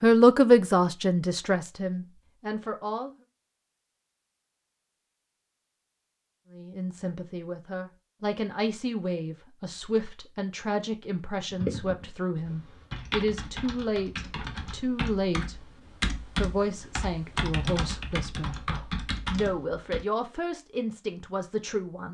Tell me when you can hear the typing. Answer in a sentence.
You can hear the typing from 11.5 to 20.1 s.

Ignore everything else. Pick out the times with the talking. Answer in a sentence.
The talking can be heard from 0.0 to 3.1 s, from 6.5 to 15.6 s and from 16.4 to 22.0 s.